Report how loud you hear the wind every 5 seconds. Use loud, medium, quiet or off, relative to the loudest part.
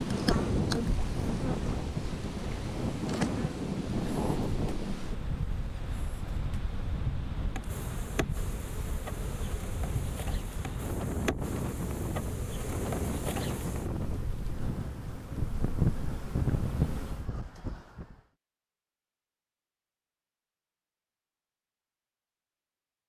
loud, medium, loud, loud, off.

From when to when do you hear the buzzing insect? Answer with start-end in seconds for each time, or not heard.
0.0-17.3.